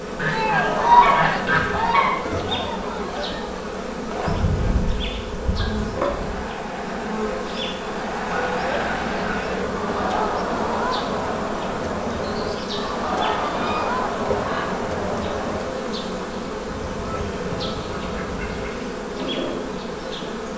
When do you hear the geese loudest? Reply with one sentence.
The volume of the geese peaks at 1 second.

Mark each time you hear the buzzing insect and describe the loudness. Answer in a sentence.
The buzzing insect can be heard from 0.0 to 20.5 s, at a steady volume.